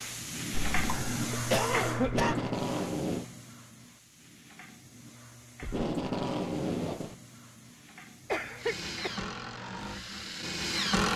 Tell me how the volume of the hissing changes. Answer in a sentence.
The loudness of the hissing goes down.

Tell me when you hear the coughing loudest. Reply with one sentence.
The volume of the coughing peaks at 2 seconds.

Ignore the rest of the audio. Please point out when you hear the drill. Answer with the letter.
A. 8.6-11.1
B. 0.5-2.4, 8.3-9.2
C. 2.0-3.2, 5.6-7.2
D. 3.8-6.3
A.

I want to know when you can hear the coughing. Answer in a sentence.
You can hear the coughing from 0.5 to 2.4 s and from 8.3 to 9.2 s.